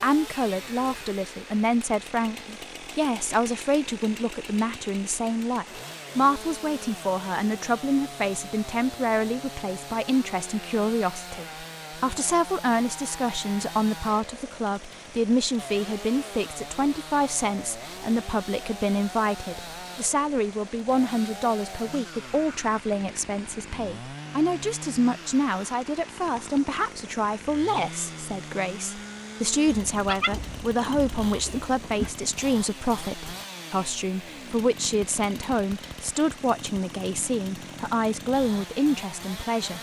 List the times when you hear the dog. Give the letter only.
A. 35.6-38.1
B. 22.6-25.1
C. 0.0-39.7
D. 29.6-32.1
D.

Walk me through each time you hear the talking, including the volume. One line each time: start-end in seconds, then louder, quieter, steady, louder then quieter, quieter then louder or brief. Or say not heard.
0.0-39.7 steady.